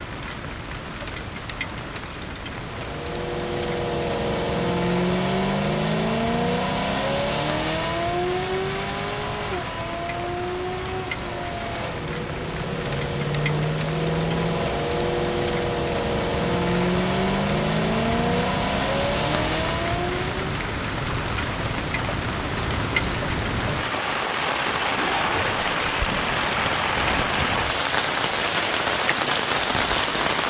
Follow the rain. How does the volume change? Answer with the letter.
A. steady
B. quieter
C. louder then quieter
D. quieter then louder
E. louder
E.